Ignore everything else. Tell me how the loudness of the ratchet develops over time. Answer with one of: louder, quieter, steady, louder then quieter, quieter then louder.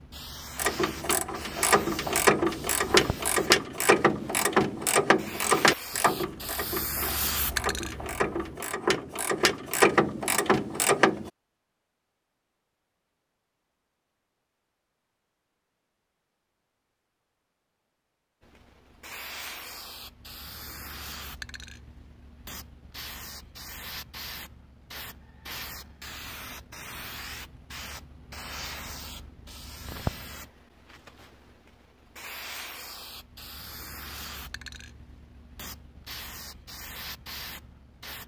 quieter then louder.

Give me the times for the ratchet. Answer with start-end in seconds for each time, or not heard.
0.6-11.3.